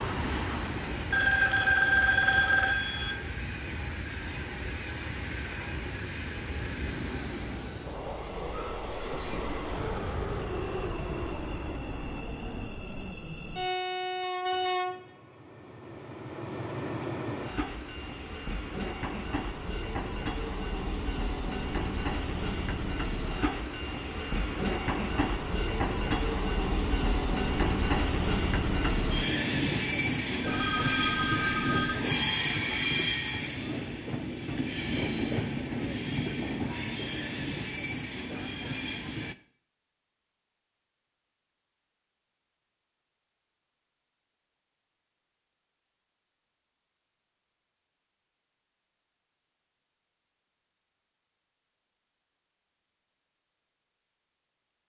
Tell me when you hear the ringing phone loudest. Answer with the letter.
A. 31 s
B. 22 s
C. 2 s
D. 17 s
C.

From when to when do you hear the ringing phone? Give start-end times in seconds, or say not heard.
1.1-3.1, 30.4-31.9.